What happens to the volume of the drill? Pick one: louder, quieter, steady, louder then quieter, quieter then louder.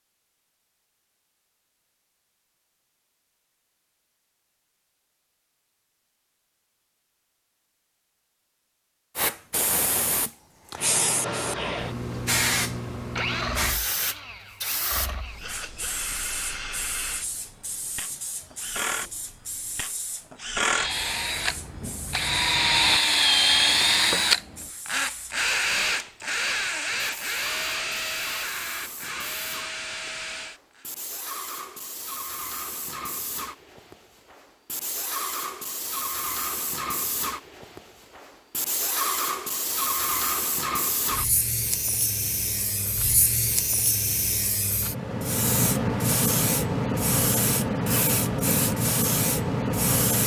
louder then quieter.